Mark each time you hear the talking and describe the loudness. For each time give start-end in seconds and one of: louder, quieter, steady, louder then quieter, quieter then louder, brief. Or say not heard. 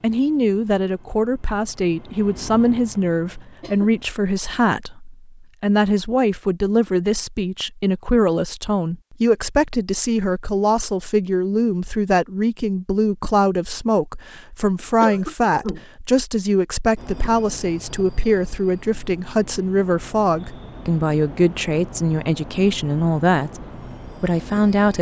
0.0-24.9 steady.